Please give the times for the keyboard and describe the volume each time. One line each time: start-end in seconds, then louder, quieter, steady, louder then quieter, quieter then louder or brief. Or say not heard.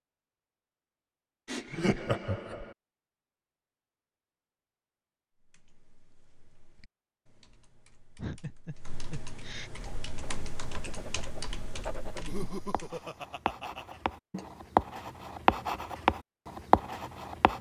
5.3-13.0 louder.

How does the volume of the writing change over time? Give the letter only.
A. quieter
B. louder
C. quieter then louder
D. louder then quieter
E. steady
B.